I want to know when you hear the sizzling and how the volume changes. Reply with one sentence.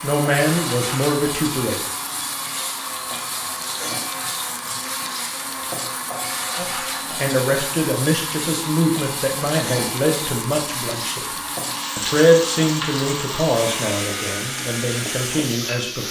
You can hear the sizzling from 0.0 to 16.0 s, at a steady volume.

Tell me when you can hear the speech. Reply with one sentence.
The speech can be heard from 0.0 to 1.9 s, from 6.5 to 11.2 s and from 11.9 to 16.0 s.